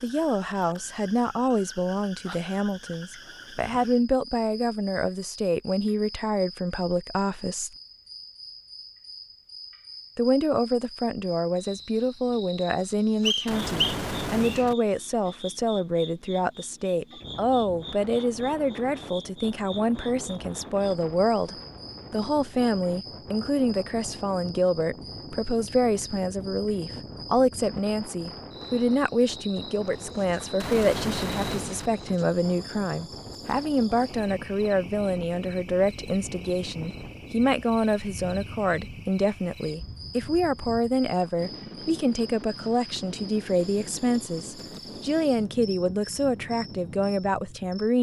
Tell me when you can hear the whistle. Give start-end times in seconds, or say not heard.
13.2-14.7.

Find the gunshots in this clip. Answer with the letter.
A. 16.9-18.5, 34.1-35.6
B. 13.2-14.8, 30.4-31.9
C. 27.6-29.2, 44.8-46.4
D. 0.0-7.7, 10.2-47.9
B.